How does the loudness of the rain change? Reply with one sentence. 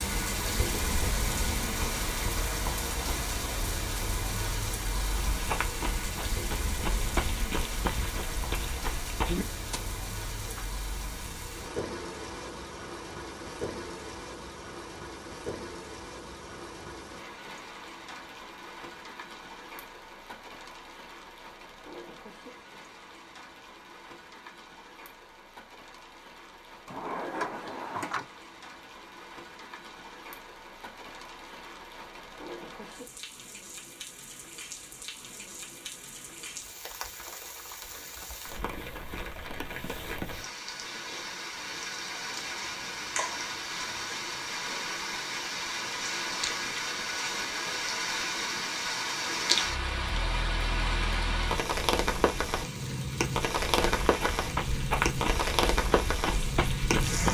The loudness of the rain goes down, then up.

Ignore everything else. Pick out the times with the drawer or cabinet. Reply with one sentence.
You can hear the drawer or cabinet from 26.9 to 28.2 s.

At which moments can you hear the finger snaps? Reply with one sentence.
The finger snaps can be heard from 42.6 to 43.6 s.